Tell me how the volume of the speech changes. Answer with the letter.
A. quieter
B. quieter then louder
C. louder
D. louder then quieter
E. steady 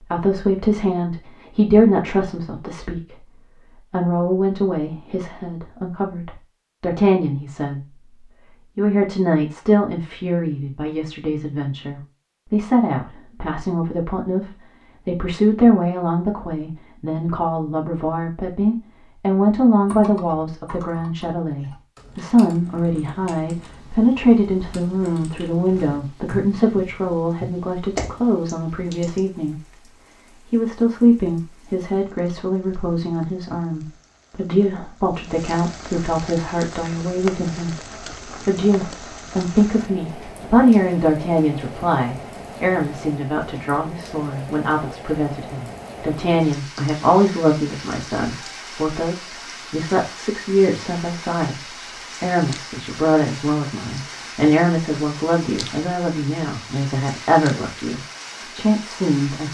E.